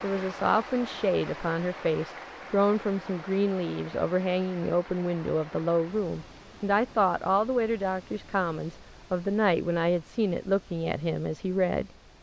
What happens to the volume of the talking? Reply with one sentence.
The loudness of the talking stays about the same.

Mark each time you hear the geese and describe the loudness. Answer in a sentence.
The geese can't be heard in this clip.